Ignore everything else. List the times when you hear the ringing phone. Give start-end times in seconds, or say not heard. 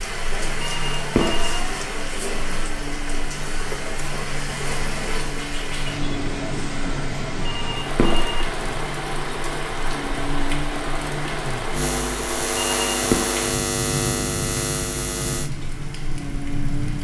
0.6-2.1, 7.4-8.4, 12.5-13.2.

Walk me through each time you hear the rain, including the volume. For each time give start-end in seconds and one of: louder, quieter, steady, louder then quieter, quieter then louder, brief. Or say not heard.
0.0-16.9 steady.